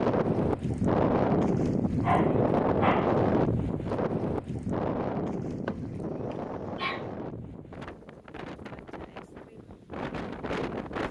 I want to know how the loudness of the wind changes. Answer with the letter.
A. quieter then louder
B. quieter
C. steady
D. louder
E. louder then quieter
B.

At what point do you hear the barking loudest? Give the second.
2 s.